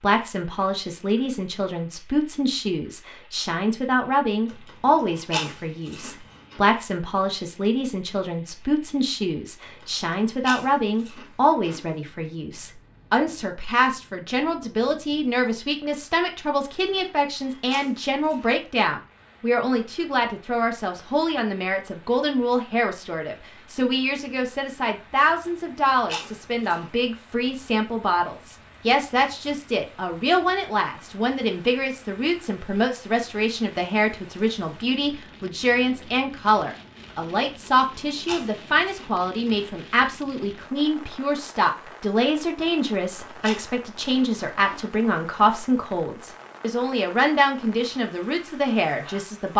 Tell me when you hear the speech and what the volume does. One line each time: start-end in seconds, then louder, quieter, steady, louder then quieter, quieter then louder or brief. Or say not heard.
0.0-49.5 steady.